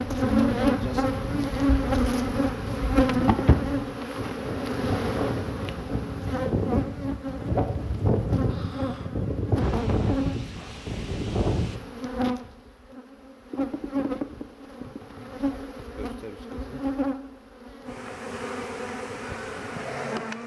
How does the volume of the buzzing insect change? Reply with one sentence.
The loudness of the buzzing insect goes down.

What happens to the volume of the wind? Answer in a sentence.
The loudness of the wind goes up.